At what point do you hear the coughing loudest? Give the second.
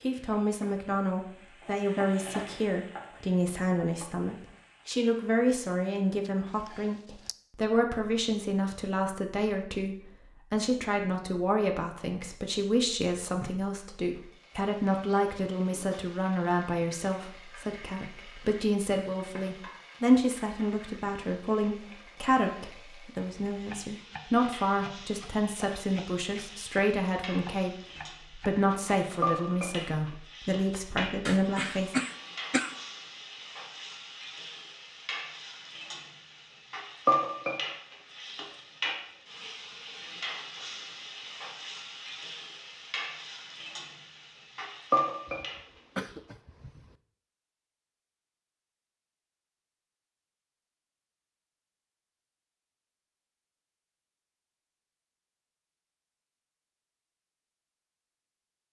32 s.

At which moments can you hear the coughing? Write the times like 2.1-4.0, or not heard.
6.2-7.3, 31.2-32.8, 45.2-47.0.